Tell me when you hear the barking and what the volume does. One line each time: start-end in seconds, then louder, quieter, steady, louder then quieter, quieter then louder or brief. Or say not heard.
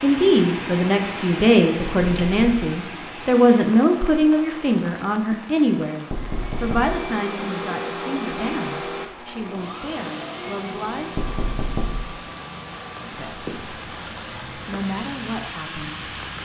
not heard.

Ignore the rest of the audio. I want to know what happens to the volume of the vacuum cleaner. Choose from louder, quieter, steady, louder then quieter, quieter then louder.
quieter.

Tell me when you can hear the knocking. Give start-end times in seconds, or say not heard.
1.9-2.5, 6.1-7.1, 11.2-12.2.